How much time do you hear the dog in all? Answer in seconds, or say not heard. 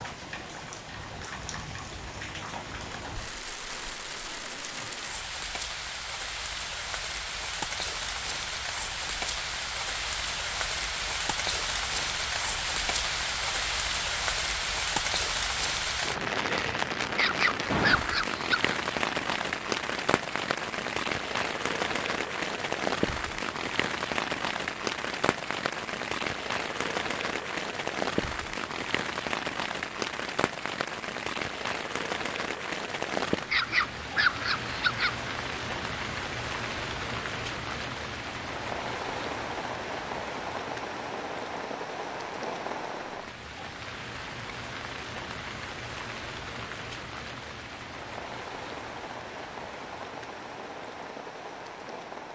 3 s.